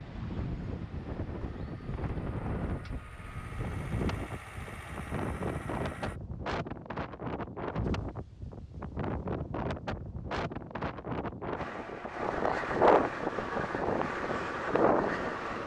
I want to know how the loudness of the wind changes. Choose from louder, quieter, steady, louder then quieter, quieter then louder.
louder.